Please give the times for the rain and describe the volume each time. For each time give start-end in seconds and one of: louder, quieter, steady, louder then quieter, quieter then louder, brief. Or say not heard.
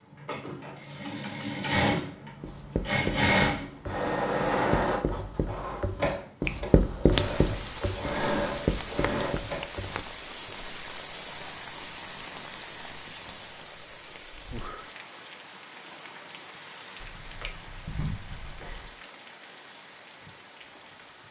7.1-21.2 quieter.